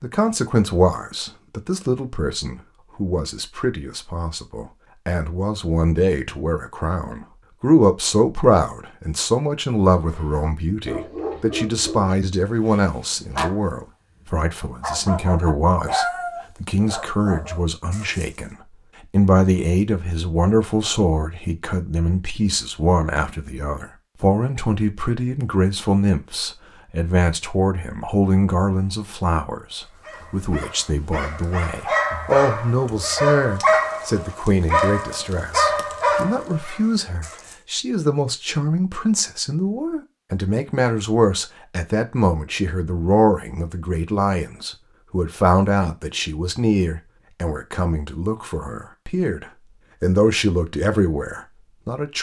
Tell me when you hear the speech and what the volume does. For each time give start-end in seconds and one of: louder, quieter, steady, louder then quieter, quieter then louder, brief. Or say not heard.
0.0-52.1 steady.